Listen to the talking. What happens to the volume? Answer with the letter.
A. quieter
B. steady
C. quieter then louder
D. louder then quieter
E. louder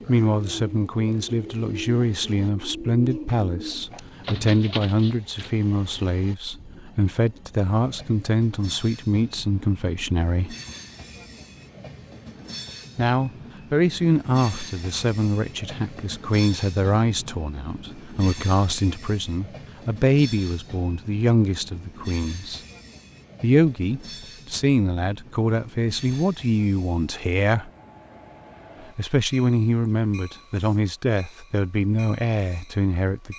B.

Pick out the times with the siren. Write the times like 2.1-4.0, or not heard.
not heard.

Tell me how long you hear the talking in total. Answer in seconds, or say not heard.
29 s.